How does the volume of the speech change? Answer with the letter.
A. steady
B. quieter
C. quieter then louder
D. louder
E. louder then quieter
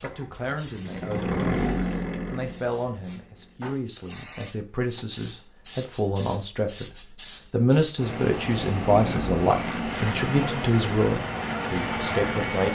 D.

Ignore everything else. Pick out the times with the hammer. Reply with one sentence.
You can't hear the hammer here.